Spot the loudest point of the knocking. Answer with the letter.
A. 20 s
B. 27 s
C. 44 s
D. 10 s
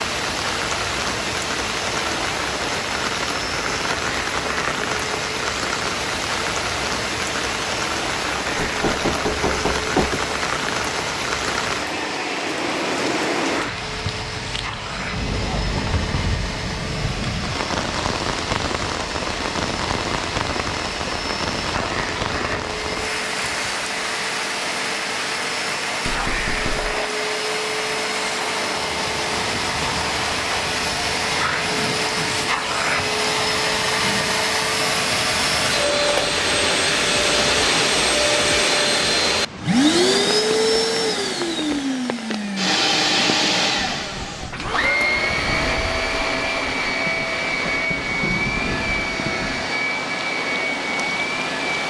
D.